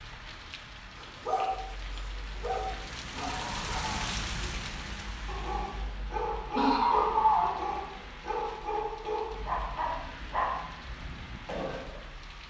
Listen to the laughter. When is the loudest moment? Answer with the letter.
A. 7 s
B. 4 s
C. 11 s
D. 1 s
A.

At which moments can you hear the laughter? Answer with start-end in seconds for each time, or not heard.
3.1-4.2, 6.5-7.5.